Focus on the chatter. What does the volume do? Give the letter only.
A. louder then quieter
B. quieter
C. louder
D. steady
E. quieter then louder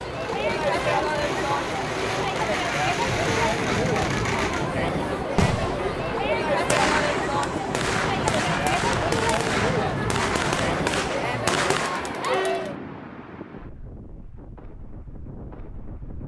D.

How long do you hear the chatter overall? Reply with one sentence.
The chatter can be heard for 13 seconds in total.